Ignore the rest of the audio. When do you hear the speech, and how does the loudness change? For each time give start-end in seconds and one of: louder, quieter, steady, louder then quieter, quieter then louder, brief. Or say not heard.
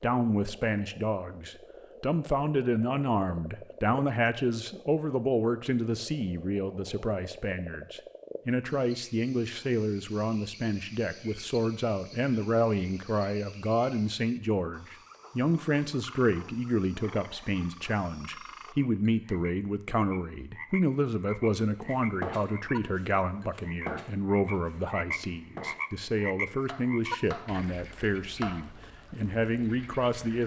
0.0-30.4 steady.